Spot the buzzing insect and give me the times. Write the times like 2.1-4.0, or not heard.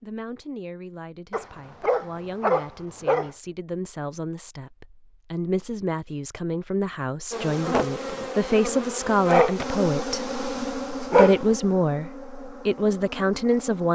7.3-13.9.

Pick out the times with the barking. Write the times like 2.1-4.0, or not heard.
1.3-3.3, 9.2-11.6.